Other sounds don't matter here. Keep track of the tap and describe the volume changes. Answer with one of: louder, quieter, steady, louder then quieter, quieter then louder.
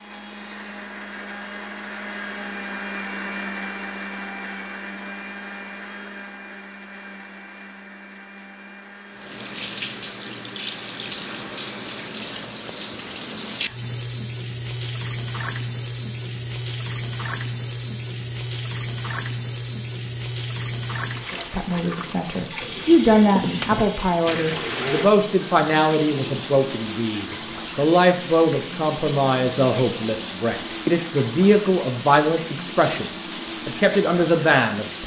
steady.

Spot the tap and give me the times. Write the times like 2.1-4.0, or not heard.
9.1-35.0.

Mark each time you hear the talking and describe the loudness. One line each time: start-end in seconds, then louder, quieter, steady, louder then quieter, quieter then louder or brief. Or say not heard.
21.3-35.0 steady.